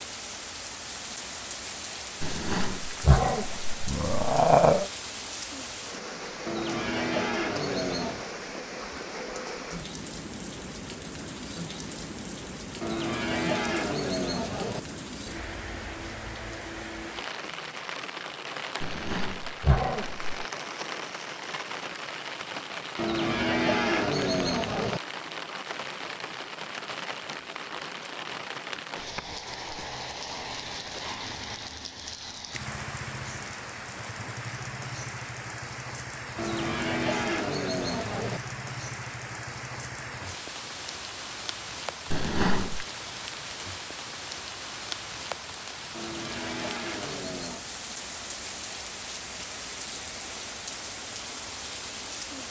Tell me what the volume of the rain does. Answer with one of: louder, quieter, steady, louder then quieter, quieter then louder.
steady.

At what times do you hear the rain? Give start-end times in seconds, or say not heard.
0.0-52.4.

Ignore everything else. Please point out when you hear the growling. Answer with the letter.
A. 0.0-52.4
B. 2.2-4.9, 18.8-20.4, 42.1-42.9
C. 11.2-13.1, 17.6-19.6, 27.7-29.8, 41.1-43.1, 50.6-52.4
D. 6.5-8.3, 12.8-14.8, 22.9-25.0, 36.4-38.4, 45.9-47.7
B.